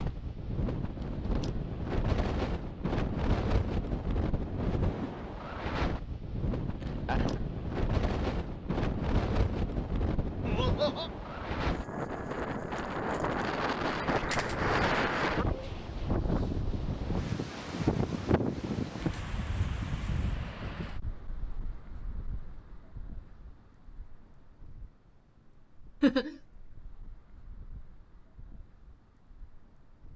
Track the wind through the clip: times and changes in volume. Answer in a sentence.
The wind can be heard from 0.0 to 30.1 s, getting quieter.